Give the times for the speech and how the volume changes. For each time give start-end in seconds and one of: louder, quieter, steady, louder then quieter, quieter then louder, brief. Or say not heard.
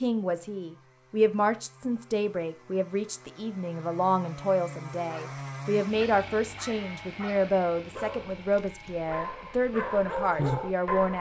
0.0-11.1 steady.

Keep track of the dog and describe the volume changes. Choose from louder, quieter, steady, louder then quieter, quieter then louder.
louder.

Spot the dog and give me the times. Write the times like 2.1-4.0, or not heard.
5.0-11.1.